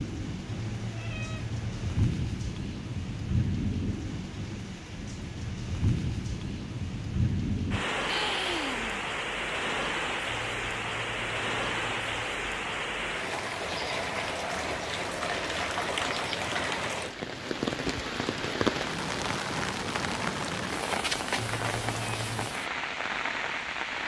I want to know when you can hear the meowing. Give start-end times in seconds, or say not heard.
0.5-2.1, 10.2-12.3, 21.4-22.5.